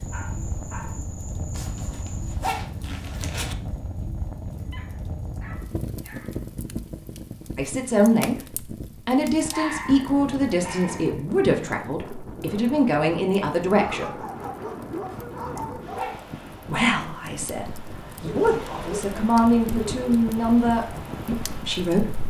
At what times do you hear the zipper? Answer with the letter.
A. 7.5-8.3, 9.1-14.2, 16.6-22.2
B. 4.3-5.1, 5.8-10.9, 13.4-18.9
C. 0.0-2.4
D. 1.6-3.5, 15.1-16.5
D.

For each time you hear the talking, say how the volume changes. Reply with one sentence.
The talking can be heard briefly from 7.5 to 8.3 s; from 9.1 to 14.2 s, at a steady volume; and from 16.6 to 22.2 s, getting louder then quieter.